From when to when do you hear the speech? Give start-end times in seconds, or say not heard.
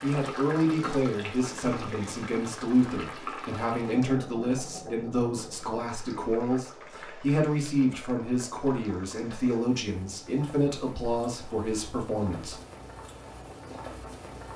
0.0-12.6.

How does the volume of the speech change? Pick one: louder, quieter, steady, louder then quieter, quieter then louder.
steady.